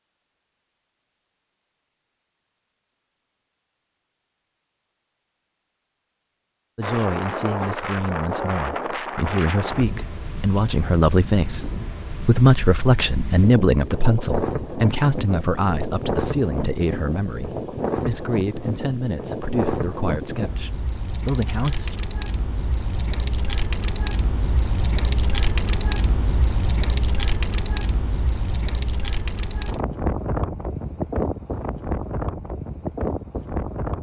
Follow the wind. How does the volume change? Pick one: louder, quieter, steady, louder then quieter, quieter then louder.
steady.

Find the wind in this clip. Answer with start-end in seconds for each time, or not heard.
6.8-33.9.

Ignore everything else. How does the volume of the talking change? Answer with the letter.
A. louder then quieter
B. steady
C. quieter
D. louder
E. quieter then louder
A.